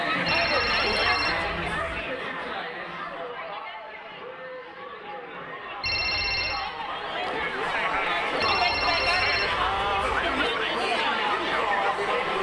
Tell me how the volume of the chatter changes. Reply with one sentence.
The loudness of the chatter goes down, then up.